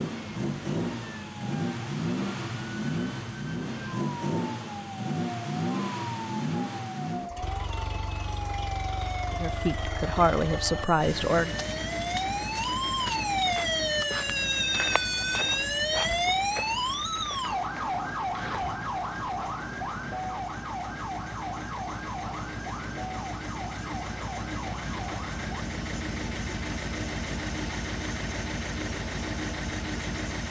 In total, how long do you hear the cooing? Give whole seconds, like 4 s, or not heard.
not heard.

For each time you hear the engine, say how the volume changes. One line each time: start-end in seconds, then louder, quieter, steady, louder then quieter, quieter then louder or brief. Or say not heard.
0.0-30.4 quieter then louder.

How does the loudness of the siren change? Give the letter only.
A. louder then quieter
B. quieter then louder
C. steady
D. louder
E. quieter
A.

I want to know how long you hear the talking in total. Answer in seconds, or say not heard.
2 s.